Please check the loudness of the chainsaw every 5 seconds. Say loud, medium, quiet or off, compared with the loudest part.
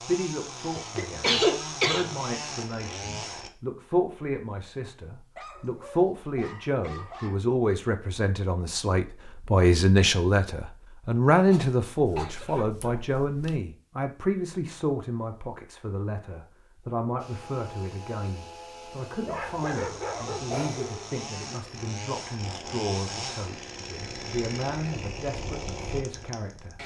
loud, off, off, medium, loud, loud.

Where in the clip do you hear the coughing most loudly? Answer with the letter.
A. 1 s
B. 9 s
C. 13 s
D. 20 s
A.